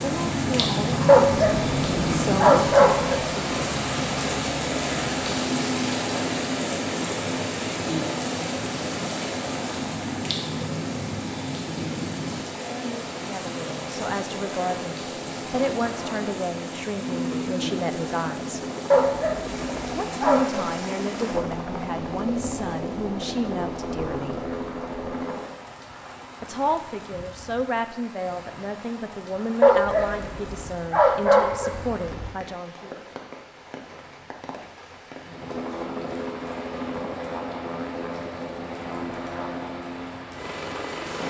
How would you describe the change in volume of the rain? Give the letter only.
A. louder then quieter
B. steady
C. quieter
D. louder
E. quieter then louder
C.